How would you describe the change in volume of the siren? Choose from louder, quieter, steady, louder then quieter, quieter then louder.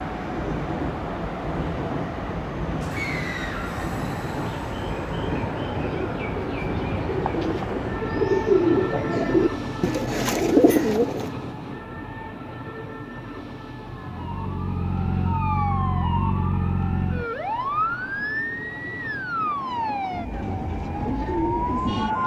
steady.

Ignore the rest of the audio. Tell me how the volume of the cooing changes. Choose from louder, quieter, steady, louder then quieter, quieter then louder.
louder.